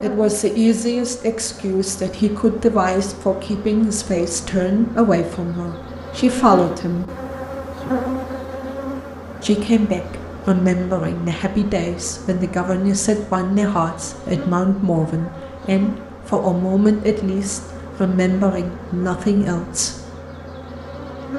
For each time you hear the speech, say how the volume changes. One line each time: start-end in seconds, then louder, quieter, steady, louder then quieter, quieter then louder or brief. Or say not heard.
0.0-7.0 steady
9.4-19.9 steady.